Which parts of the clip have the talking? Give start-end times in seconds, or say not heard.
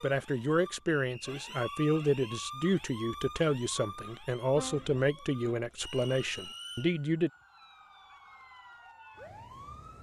0.0-7.3.